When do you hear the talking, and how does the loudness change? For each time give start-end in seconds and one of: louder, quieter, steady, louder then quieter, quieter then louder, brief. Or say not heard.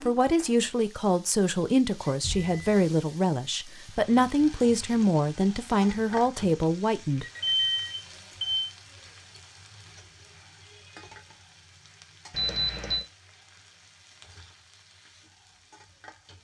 0.0-7.2 steady.